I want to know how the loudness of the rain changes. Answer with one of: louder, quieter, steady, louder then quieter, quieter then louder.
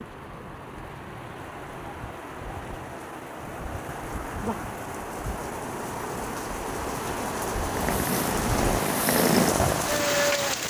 louder.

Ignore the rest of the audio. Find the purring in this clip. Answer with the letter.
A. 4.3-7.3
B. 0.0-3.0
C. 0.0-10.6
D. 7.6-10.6
D.